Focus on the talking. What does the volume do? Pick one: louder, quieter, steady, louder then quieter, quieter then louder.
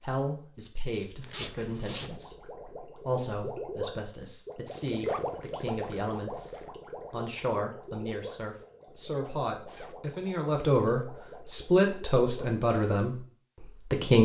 louder.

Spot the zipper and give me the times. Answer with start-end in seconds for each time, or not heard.
1.2-2.2, 5.0-6.8, 9.7-10.1.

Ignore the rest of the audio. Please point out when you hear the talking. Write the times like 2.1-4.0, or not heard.
0.0-6.5, 7.1-14.2.